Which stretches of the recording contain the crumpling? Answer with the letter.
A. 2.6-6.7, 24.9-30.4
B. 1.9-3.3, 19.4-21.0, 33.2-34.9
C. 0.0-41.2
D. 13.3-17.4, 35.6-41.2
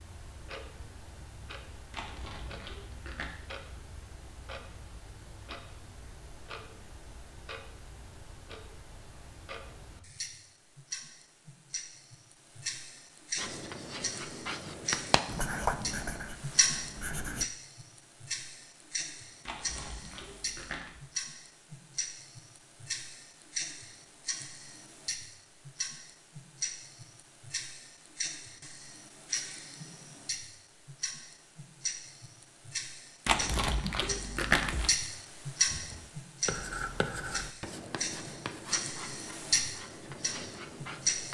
B.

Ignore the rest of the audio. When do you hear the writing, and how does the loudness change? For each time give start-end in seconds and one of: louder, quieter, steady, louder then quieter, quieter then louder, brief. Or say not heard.
13.3-17.4 louder then quieter
35.6-41.2 quieter.